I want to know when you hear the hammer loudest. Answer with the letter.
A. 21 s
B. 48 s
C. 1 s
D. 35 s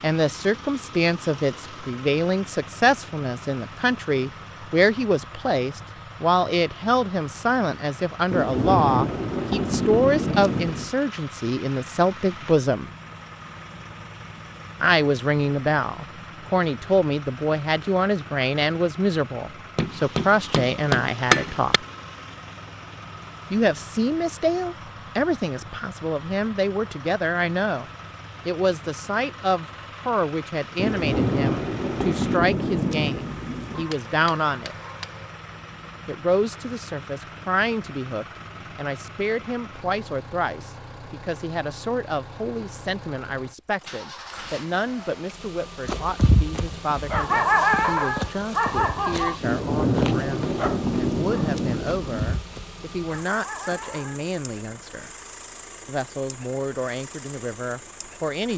A.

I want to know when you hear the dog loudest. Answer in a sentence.
The loudest moment of the dog is at 48 seconds.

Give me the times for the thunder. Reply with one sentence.
You can hear the thunder from 8.3 to 10.9 s, from 30.8 to 33.9 s and from 49.4 to 52.4 s.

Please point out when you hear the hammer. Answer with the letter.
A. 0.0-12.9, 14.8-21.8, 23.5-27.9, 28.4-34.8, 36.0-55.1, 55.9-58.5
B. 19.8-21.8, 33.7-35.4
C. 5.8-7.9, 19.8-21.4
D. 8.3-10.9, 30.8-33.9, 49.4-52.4
B.